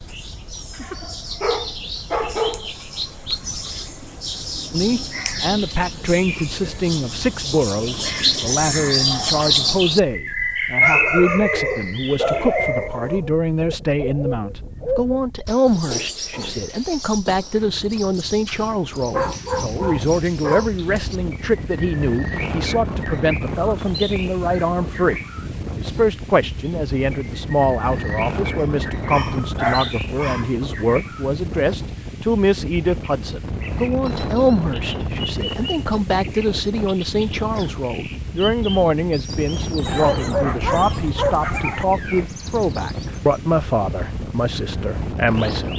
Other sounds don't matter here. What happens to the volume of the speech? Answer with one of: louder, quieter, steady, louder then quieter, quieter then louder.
steady.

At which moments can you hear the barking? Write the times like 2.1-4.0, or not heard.
0.8-2.7, 10.8-13.2, 19.1-20.7, 28.6-30.5, 39.9-41.9.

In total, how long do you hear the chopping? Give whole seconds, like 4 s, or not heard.
not heard.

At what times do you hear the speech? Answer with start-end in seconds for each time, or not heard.
4.7-45.7.